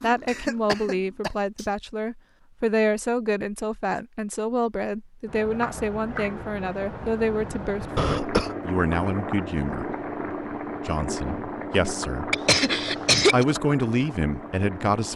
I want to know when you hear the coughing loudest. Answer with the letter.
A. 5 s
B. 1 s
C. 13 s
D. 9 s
C.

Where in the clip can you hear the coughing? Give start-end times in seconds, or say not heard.
0.2-1.3, 8.0-8.5, 12.3-13.4.